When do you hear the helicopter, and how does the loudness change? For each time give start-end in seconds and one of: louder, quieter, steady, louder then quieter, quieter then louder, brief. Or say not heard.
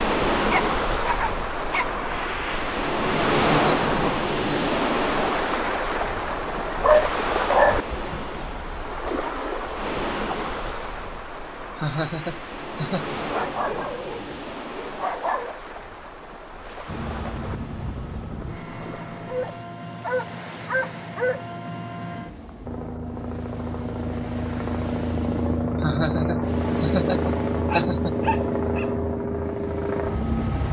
16.9-30.6 louder.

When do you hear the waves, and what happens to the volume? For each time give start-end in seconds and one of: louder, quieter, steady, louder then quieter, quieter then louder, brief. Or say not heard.
0.0-30.6 quieter.